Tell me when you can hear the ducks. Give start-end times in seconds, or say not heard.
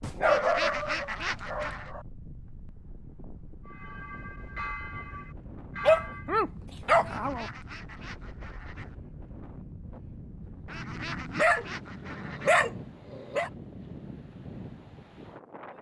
0.2-1.9, 7.0-8.9, 10.7-12.6.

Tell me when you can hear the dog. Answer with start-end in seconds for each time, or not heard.
0.0-2.0, 5.8-7.5, 10.7-13.5.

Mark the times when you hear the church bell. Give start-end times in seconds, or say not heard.
3.6-6.3.